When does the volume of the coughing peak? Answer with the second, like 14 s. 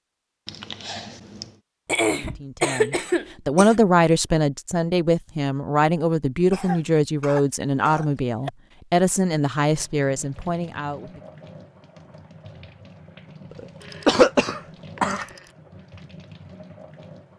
14 s.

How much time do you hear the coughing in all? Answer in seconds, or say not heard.
6 s.